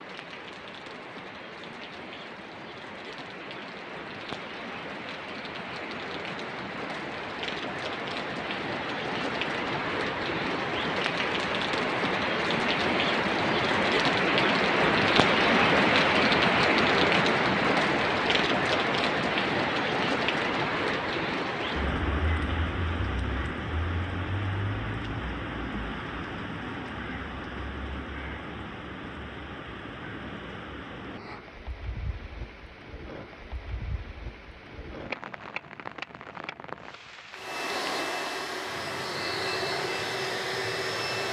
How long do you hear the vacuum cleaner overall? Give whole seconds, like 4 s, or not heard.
4 s.